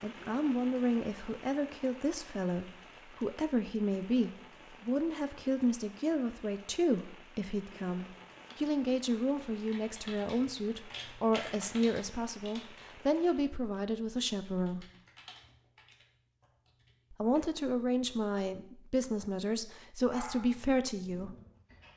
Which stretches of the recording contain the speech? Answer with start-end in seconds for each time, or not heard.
0.0-14.8, 17.1-21.4.